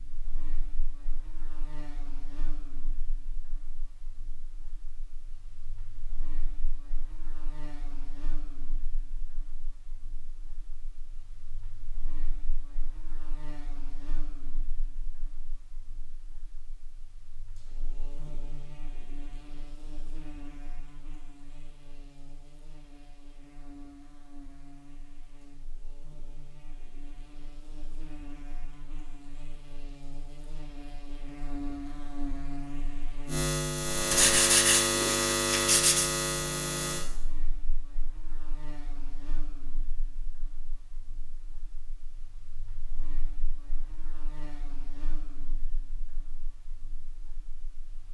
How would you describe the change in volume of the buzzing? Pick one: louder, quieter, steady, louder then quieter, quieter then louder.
louder then quieter.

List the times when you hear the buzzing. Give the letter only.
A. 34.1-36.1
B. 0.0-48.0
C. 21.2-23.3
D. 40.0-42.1
B.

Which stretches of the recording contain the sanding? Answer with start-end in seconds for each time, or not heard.
34.1-36.1.